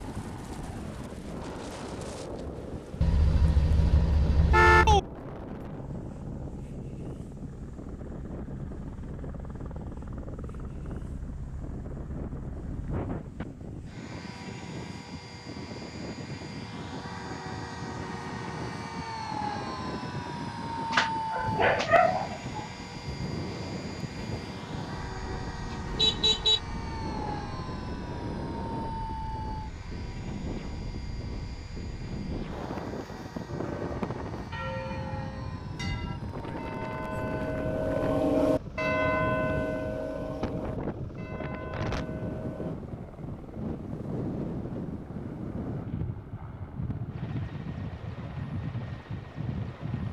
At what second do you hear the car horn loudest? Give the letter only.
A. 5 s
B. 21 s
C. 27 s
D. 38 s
A.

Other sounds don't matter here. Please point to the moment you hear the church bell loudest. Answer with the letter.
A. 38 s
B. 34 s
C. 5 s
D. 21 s
A.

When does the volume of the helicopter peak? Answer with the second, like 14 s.
21 s.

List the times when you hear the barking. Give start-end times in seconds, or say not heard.
20.9-22.6.